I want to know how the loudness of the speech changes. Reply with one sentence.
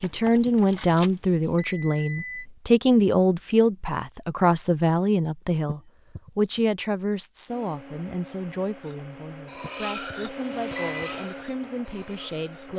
The volume of the speech goes down.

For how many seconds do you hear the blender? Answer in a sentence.
You can hear the blender for 5 seconds altogether.